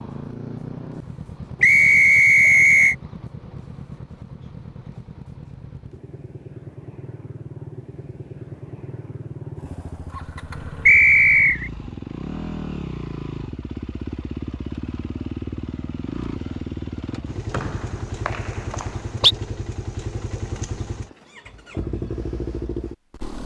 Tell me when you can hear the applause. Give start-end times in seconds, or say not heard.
not heard.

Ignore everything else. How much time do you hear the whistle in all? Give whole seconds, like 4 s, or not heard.
4 s.